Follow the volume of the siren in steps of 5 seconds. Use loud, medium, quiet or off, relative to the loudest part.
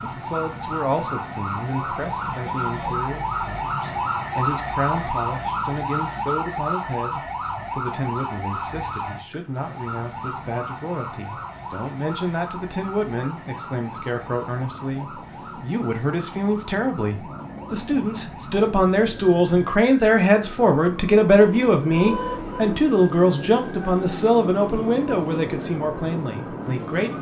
loud, loud, medium, quiet, quiet, quiet.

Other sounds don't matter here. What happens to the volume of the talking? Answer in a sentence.
The volume of the talking goes up.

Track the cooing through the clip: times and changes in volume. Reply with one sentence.
The cooing can't be heard in this clip.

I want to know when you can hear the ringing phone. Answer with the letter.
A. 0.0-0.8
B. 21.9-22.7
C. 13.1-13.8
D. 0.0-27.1
B.